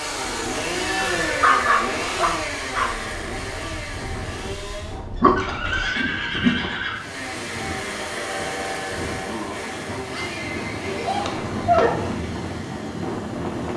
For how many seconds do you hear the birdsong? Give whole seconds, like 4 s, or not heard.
not heard.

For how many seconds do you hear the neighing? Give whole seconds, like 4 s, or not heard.
4 s.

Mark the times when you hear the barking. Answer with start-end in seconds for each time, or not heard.
1.2-2.9, 5.2-6.6, 11.2-12.1.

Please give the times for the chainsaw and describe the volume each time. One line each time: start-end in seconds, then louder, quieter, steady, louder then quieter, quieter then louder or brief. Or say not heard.
0.0-5.0 quieter
6.9-13.7 quieter.